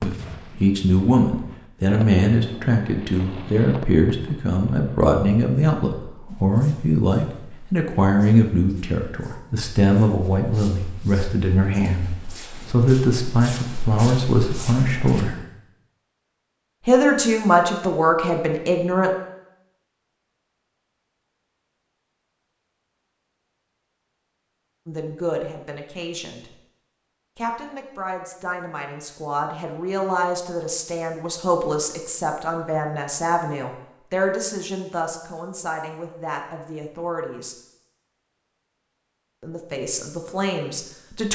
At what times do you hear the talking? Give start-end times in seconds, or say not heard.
0.0-15.3, 16.9-19.1, 24.9-26.6, 27.4-37.5, 39.4-41.3.